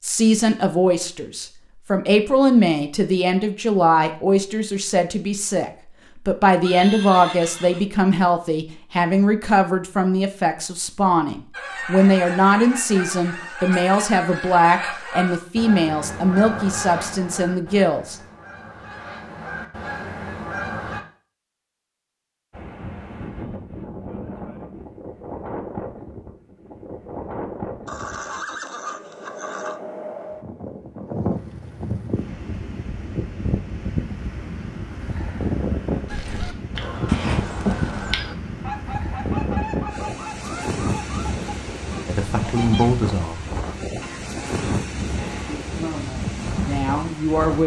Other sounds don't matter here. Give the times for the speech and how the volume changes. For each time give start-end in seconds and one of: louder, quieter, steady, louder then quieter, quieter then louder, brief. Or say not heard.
0.0-18.1 steady
42.0-43.4 brief
45.5-47.6 brief.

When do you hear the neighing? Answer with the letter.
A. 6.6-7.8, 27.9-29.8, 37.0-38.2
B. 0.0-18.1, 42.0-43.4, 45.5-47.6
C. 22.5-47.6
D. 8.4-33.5
A.